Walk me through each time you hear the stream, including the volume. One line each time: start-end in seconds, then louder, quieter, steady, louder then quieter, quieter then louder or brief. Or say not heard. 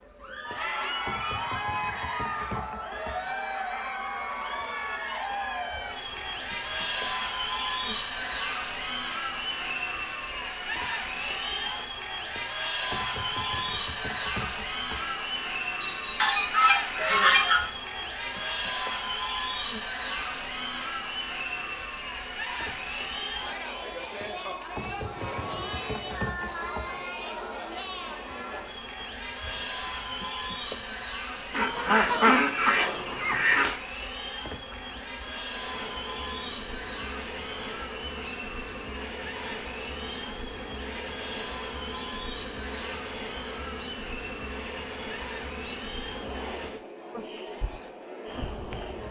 not heard.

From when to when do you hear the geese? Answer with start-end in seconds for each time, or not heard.
16.2-17.7, 31.5-33.8.